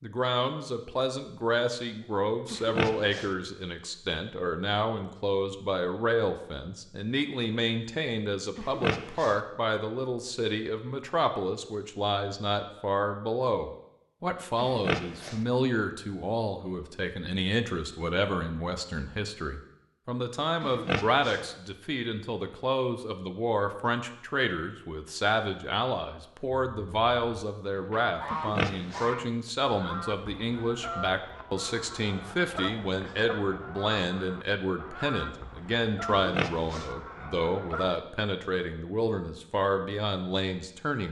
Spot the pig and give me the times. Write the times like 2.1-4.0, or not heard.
2.5-3.4, 8.6-9.4, 14.6-15.4, 20.6-21.4, 28.3-29.1, 36.1-37.0.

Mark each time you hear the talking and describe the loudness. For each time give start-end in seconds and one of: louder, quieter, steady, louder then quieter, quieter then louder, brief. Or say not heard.
0.0-41.0 steady.